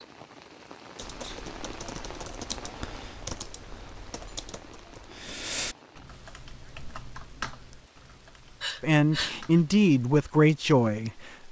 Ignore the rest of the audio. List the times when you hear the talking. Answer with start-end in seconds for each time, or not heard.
8.8-11.4.